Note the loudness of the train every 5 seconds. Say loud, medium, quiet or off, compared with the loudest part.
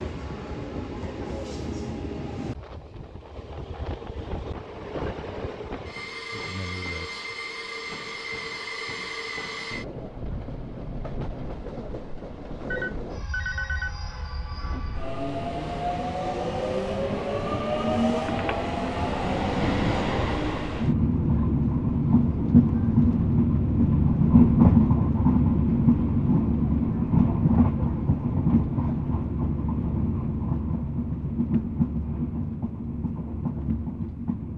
quiet, quiet, quiet, medium, loud, loud, medium.